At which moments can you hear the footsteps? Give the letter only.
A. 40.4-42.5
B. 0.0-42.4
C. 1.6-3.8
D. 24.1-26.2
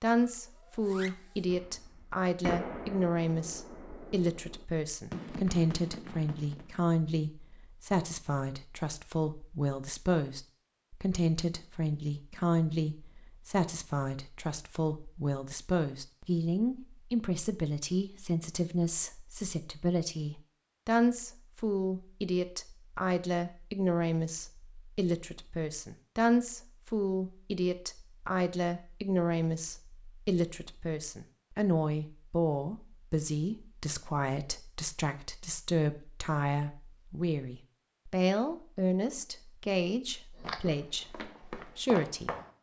A.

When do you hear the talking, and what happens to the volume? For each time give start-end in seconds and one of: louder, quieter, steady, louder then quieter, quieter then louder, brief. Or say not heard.
0.0-42.4 steady.